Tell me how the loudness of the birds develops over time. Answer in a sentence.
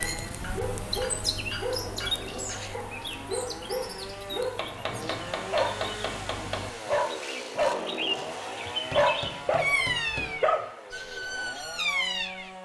The volume of the birds goes down, then up.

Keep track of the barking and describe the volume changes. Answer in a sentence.
The volume of the barking goes up.